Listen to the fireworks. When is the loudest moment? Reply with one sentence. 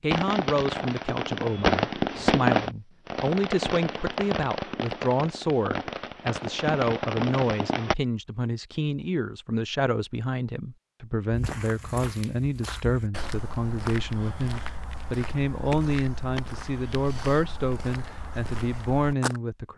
The loudest moment of the fireworks is at 2 seconds.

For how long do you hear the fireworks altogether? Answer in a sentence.
The fireworks can be heard for 8 seconds in total.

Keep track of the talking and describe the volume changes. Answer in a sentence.
The volume of the talking stays about the same.